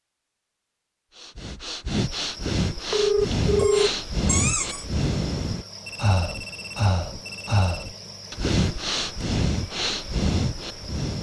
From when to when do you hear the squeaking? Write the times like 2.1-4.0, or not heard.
3.5-4.8.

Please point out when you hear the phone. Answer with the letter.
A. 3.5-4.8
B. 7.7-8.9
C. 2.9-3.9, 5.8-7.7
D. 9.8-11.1
C.